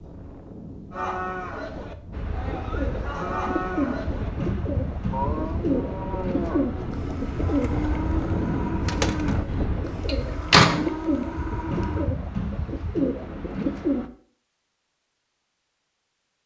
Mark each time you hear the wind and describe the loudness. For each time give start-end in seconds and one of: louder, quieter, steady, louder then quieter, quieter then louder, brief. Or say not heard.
0.0-10.1 louder.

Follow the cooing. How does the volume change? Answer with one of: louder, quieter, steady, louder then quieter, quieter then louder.
steady.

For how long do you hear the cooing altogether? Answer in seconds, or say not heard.
12 s.